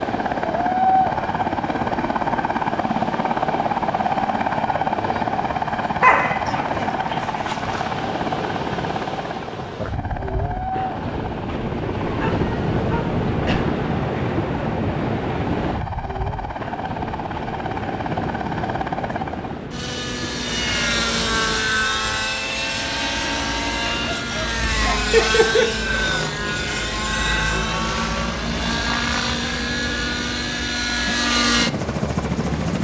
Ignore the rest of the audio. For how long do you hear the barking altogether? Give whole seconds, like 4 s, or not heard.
5 s.